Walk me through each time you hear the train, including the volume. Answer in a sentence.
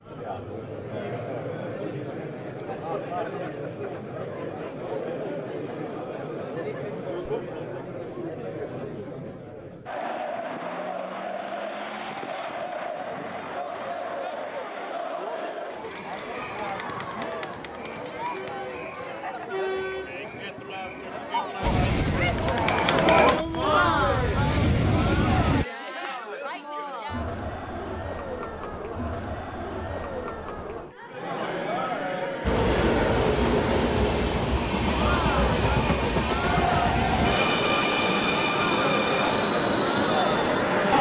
You can hear the train from 21.6 to 25.6 s, getting quieter then louder; and from 32.4 to 40.9 s, at a steady volume.